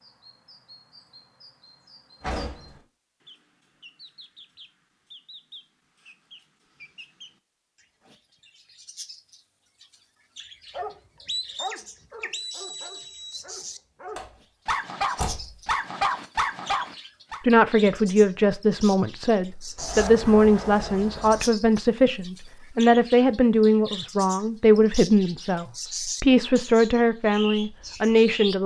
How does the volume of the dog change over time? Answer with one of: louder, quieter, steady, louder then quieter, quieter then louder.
quieter then louder.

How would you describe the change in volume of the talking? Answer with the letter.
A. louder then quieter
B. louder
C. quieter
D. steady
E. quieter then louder
D.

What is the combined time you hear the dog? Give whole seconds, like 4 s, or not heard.
7 s.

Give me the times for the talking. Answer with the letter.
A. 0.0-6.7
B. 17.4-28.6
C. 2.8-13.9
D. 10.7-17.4
B.